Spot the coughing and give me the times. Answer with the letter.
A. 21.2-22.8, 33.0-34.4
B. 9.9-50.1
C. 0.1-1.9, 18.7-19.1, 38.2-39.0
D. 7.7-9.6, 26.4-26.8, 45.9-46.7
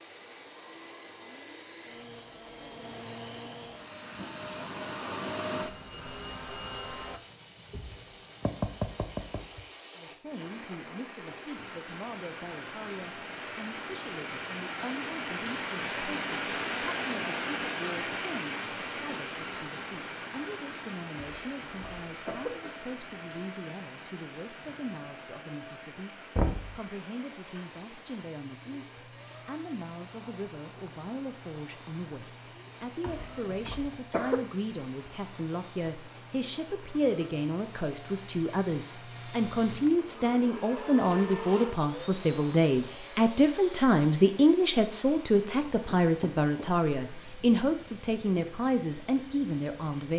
A.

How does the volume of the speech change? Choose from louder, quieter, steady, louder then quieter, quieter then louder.
louder.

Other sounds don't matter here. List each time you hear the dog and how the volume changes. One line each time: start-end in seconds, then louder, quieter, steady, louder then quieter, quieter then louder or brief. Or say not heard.
not heard.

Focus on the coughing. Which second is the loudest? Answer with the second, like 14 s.
34 s.